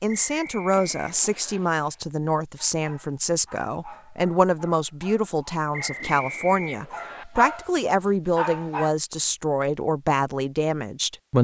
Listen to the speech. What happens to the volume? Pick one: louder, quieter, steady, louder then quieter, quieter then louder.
steady.